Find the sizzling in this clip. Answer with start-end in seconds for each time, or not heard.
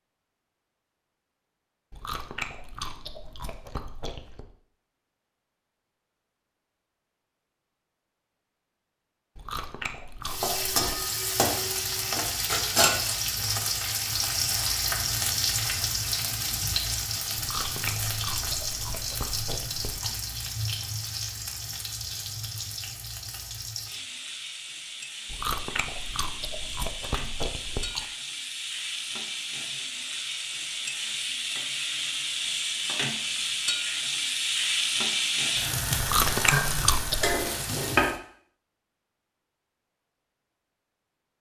10.2-38.1.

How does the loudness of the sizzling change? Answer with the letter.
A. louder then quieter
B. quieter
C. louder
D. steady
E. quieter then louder
E.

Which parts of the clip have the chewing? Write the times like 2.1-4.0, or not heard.
1.9-4.5, 9.3-11.0, 17.4-20.1, 25.2-28.1, 36.0-37.4.